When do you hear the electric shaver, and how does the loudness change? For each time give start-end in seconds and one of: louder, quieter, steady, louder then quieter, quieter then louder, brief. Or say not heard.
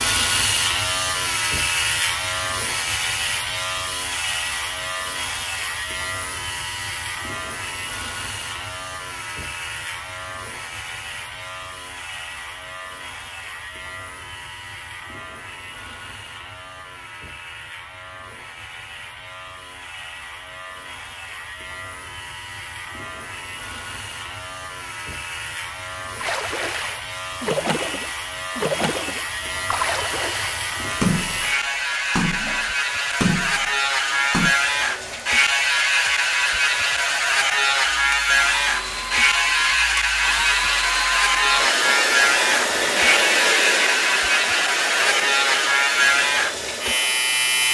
0.0-47.7 quieter then louder.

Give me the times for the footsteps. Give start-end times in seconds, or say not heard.
not heard.